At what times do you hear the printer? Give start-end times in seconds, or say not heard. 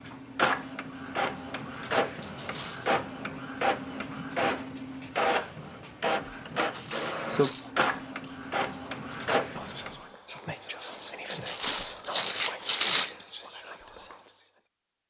0.0-10.1.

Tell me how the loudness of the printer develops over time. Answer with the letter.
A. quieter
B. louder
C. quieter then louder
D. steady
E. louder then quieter
D.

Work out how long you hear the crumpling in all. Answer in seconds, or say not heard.
4 s.